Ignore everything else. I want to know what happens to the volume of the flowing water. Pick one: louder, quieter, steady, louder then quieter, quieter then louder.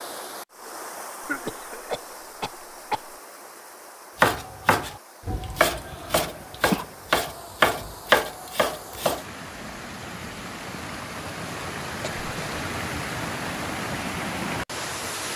quieter then louder.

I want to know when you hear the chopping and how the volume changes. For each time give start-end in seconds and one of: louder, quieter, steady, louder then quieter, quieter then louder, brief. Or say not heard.
4.2-9.2 louder.